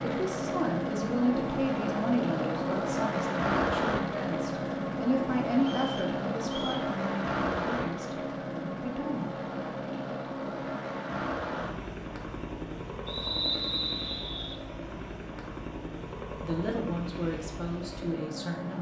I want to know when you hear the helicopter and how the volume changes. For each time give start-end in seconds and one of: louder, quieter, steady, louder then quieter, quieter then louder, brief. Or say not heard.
0.0-18.7 quieter.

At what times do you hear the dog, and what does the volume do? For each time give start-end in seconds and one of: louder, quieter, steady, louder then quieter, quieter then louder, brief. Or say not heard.
not heard.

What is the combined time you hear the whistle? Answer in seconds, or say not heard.
3 s.